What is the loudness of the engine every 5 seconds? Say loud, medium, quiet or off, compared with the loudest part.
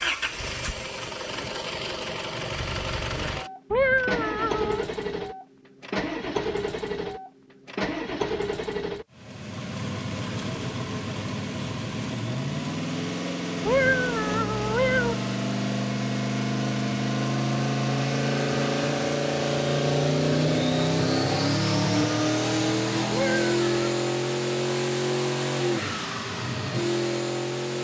medium, medium, medium, loud, loud, loud.